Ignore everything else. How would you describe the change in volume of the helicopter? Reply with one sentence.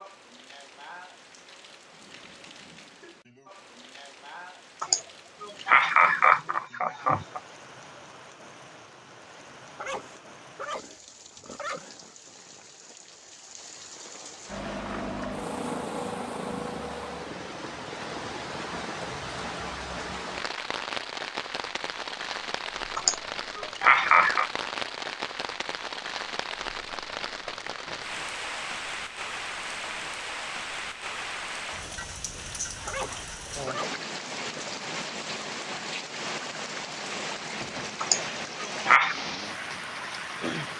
The loudness of the helicopter goes down.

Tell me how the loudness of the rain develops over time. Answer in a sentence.
The volume of the rain goes up.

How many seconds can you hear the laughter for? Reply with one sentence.
The laughter can be heard for 5 seconds in total.